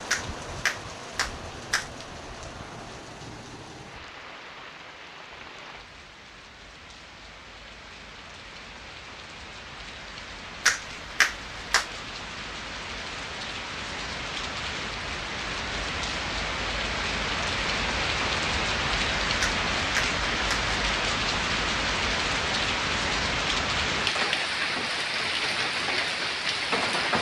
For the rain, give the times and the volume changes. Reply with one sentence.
The rain can be heard from 0.0 to 27.1 s, getting louder.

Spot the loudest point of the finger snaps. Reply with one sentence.
The volume of the finger snaps peaks at 11 seconds.